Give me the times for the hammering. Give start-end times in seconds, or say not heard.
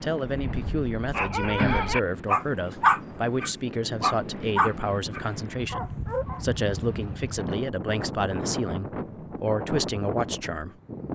not heard.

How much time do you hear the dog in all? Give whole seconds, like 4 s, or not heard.
6 s.